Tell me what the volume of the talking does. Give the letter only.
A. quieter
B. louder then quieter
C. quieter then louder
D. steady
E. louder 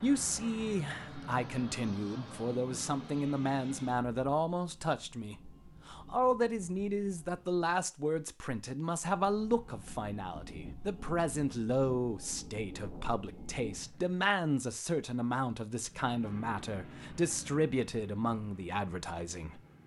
D.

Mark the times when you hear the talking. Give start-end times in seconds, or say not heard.
0.0-19.6.